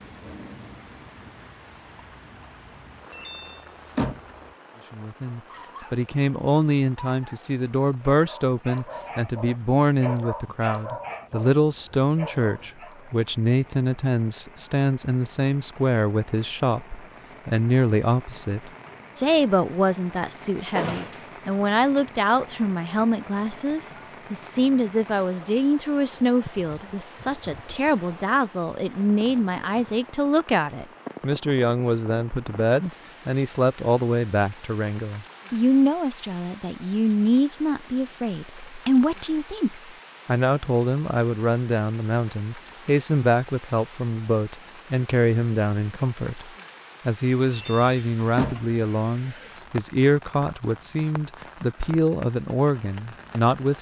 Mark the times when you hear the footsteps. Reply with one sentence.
The footsteps can't be heard in this clip.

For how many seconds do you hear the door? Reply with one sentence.
The door can be heard for 3 seconds in total.